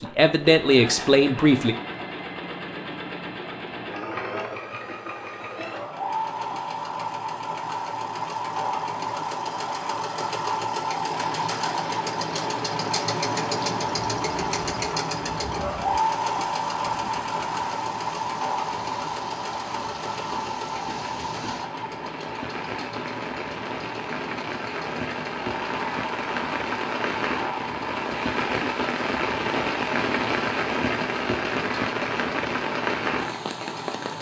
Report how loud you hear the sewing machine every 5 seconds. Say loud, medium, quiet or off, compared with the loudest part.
medium, loud, loud, loud, medium, medium, medium.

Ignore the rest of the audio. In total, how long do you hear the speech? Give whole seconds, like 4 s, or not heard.
2 s.